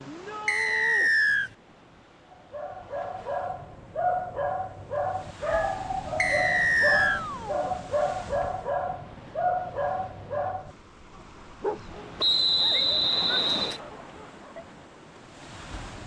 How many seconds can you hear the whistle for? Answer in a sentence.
The whistle can be heard for 4 seconds in total.